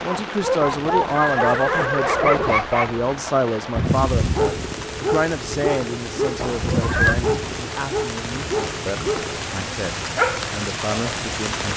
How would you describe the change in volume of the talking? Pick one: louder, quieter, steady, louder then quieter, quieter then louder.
quieter.